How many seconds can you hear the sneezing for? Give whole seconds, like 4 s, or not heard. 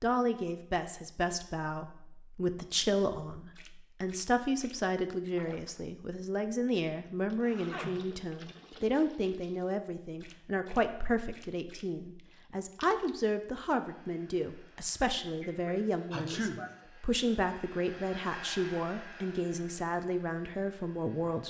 2 s.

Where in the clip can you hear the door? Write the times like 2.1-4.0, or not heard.
not heard.